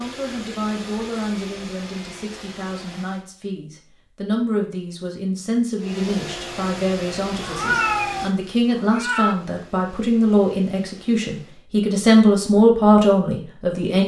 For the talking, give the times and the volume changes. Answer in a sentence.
The talking can be heard from 0.0 to 14.0 s, getting louder.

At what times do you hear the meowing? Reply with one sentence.
The meowing can be heard from 7.4 to 9.3 s.